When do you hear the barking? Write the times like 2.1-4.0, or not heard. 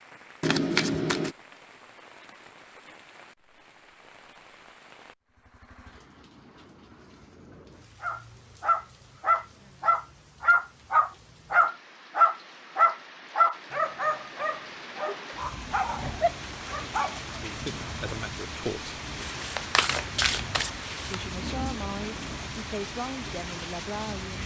8.0-17.4.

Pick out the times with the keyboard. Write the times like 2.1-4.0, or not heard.
not heard.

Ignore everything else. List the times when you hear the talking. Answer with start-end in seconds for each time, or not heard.
17.4-19.0, 21.1-24.4.